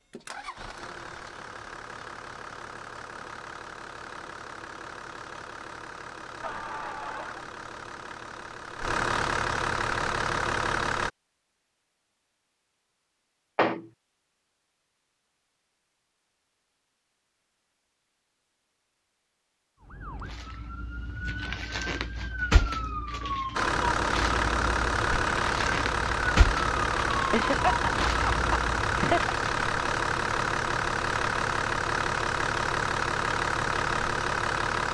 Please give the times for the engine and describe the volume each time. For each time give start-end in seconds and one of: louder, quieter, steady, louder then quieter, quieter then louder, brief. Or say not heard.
0.1-11.1 louder
23.5-34.8 steady.